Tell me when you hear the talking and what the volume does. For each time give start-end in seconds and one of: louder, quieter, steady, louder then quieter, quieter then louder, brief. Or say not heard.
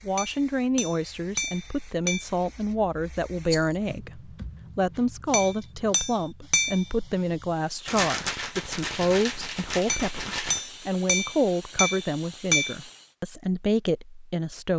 0.1-14.7 steady.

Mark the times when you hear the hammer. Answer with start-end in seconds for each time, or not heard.
0.1-2.2, 5.3-6.8, 9.8-12.8.